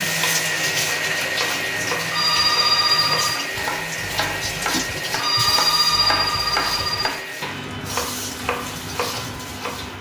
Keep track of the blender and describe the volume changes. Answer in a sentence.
The loudness of the blender goes down.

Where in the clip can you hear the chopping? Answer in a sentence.
You can hear the chopping from 0.0 to 9.9 s.